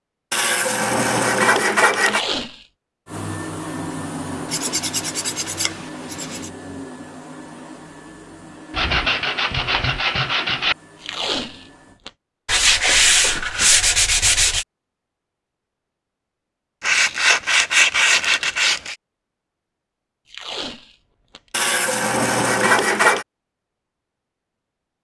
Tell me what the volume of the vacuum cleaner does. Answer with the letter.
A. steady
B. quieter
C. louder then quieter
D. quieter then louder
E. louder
B.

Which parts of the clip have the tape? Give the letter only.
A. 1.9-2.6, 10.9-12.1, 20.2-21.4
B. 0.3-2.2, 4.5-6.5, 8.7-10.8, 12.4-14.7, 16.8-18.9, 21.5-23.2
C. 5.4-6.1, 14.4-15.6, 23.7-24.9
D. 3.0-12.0
A.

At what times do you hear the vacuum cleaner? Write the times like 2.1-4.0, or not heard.
3.0-12.0.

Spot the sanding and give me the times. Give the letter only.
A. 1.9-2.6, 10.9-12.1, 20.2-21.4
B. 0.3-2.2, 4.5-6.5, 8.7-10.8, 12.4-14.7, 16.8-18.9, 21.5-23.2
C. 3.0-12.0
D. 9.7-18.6
B.